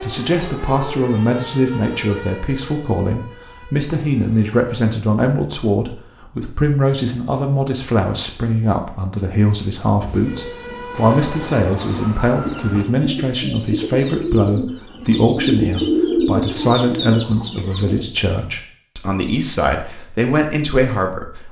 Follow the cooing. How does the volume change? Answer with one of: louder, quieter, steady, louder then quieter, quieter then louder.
louder then quieter.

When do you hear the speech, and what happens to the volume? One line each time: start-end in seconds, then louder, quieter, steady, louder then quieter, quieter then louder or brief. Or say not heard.
0.0-21.4 steady.